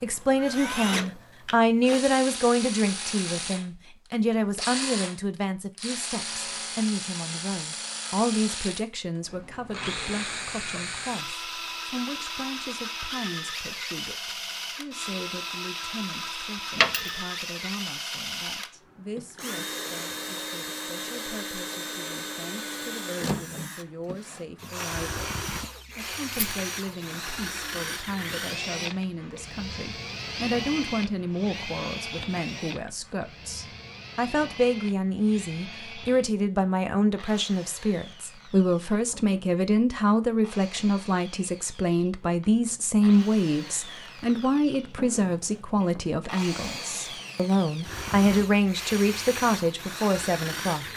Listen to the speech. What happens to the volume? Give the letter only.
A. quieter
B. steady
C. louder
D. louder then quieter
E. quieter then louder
E.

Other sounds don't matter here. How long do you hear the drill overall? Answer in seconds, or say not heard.
51 s.